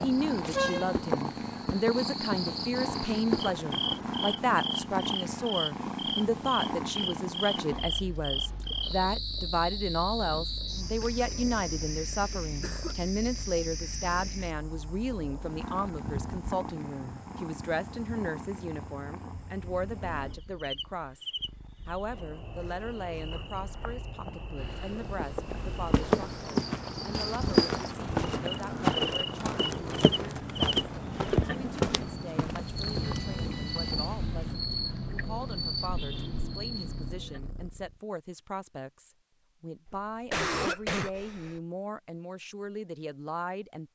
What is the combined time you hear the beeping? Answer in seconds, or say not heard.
2 s.